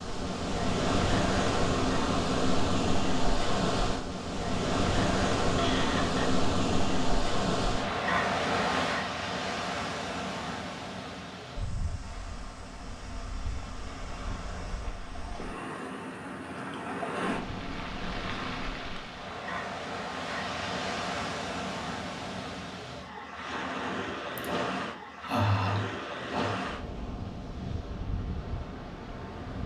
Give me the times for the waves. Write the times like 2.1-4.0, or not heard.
0.0-29.6.